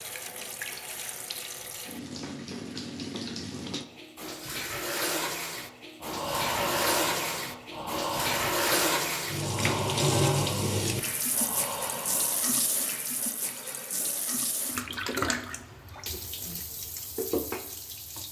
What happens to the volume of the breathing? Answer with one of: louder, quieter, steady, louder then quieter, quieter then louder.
quieter.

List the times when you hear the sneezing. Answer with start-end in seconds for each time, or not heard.
not heard.